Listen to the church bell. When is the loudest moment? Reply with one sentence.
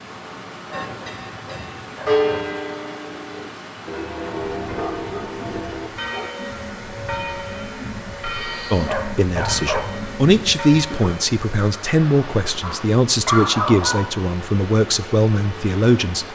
The volume of the church bell peaks at 2 seconds.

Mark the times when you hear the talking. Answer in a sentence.
You can hear the talking from 8.7 to 16.2 s.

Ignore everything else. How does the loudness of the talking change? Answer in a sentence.
The loudness of the talking stays about the same.